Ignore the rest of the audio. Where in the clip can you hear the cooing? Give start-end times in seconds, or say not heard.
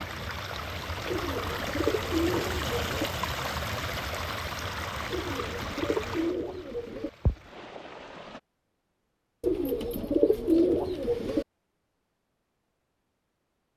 1.1-3.1, 5.1-7.1, 9.4-11.4.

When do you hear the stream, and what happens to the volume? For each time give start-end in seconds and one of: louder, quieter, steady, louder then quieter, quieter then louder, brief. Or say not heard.
0.0-8.4 quieter.